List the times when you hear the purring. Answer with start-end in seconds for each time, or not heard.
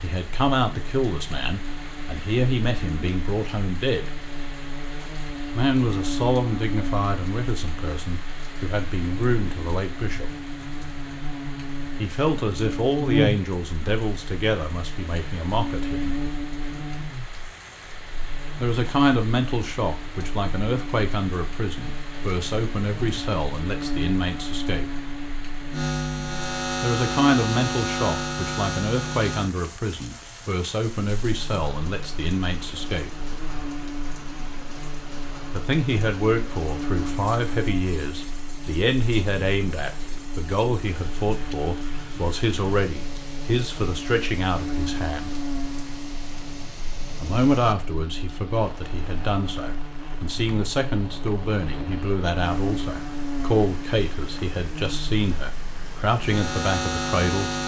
not heard.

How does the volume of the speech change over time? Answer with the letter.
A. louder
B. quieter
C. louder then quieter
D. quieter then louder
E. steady
E.